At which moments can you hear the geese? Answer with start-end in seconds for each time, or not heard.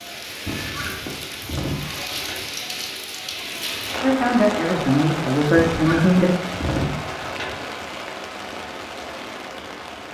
0.5-2.5, 5.5-7.5.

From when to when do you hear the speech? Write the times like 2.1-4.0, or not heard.
4.0-6.3.